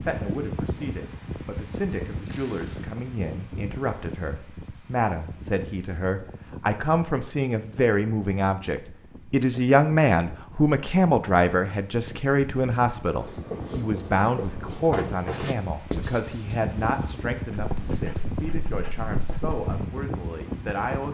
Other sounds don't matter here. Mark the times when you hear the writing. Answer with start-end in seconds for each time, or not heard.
13.1-19.9.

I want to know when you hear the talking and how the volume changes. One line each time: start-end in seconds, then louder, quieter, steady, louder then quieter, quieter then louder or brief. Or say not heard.
0.0-21.1 louder then quieter.